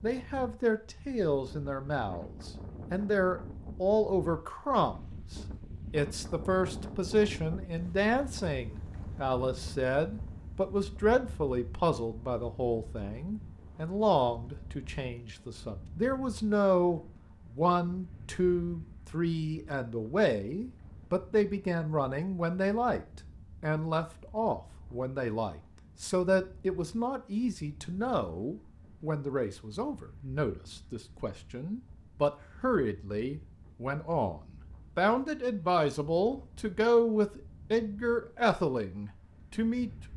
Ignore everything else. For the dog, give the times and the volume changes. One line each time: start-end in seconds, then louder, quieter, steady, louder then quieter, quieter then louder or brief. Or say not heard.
not heard.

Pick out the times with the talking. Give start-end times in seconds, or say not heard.
0.0-39.9.